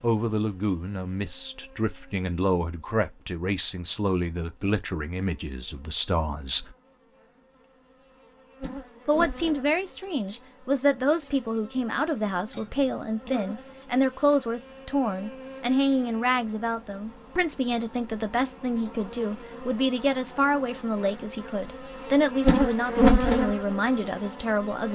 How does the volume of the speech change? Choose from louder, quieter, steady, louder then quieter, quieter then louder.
steady.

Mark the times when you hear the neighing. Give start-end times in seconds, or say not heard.
not heard.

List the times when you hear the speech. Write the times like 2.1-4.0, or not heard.
0.0-6.8, 9.1-24.9.